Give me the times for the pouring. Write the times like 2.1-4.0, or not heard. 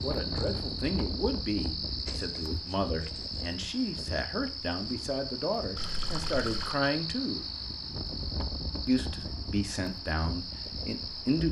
5.8-6.8.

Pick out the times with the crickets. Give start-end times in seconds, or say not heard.
0.0-11.4.